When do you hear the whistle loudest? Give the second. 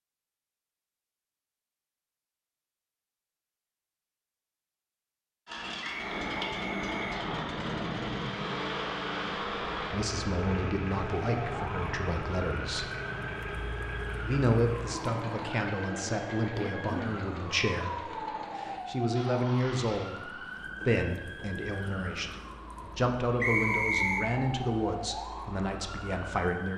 24 s.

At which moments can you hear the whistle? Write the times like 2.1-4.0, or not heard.
5.8-7.2, 23.4-24.2.